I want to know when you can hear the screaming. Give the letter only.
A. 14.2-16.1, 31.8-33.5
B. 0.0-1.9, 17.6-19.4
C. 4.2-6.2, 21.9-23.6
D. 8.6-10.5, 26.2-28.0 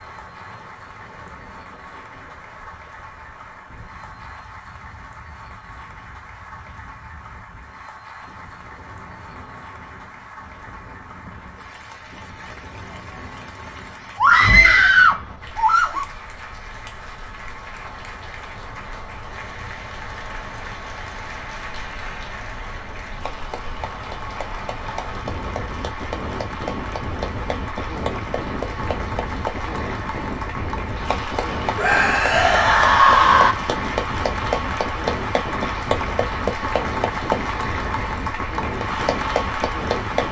A.